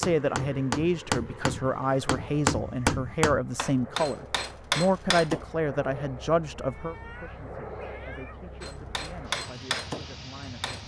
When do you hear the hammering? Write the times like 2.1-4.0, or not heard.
0.0-5.5, 8.6-10.8.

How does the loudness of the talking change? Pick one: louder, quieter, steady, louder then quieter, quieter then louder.
quieter.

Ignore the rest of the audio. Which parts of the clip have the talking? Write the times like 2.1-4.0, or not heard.
0.0-10.7.